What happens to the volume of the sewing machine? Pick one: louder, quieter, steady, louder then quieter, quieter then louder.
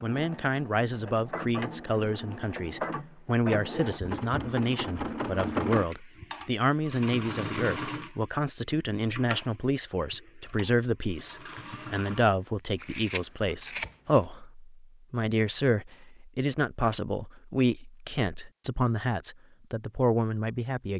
louder then quieter.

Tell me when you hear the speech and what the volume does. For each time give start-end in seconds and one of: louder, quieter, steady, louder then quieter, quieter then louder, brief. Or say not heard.
0.0-20.9 steady.